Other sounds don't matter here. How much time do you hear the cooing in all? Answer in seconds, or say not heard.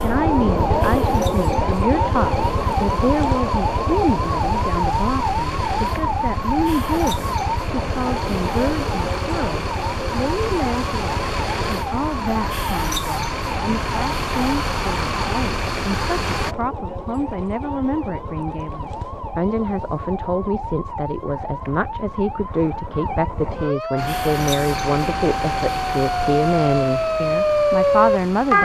not heard.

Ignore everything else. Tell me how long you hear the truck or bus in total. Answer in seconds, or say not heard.
21 s.